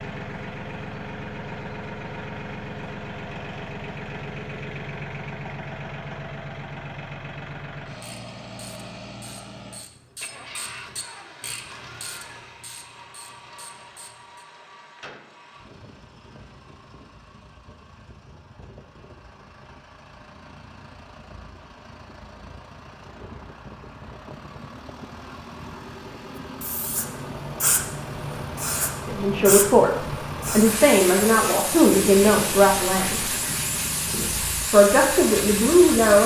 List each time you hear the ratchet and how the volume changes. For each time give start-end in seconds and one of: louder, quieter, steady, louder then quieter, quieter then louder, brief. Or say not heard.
8.0-14.4 louder then quieter.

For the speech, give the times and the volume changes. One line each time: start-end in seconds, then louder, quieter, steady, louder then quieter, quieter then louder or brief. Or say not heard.
29.1-33.3 steady
34.1-36.2 brief.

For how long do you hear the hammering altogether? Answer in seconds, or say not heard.
not heard.